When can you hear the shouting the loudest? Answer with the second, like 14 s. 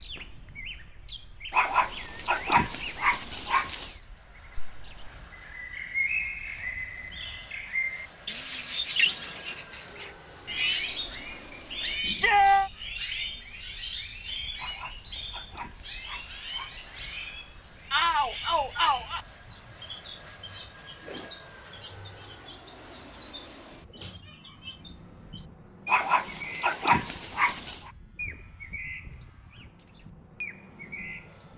12 s.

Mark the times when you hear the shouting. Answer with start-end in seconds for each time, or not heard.
12.0-12.7, 17.9-19.2.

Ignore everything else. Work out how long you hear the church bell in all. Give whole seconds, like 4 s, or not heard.
not heard.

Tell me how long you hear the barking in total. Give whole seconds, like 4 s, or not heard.
7 s.